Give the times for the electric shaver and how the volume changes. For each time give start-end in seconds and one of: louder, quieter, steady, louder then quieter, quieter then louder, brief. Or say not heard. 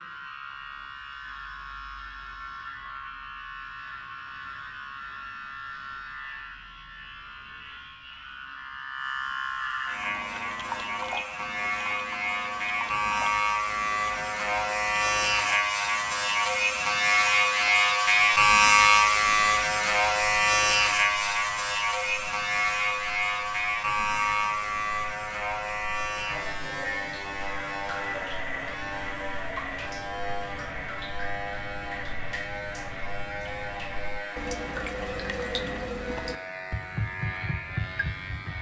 0.0-38.5 louder then quieter.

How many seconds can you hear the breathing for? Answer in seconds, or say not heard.
not heard.